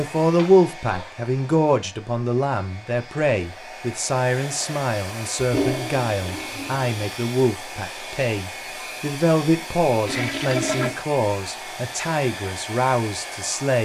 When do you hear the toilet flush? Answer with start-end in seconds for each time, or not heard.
0.2-1.1, 5.3-6.8, 10.1-10.9.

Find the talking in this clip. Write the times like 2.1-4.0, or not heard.
0.0-13.8.